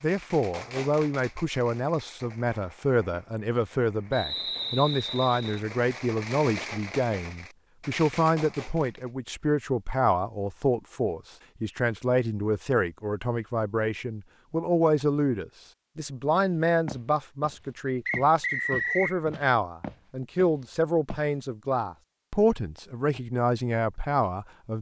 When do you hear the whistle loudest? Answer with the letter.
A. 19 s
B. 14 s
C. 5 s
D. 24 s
A.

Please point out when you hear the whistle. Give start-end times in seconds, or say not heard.
4.1-5.6, 18.1-19.1.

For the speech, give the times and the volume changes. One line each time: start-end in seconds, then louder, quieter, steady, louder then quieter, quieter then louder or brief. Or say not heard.
0.0-24.7 steady.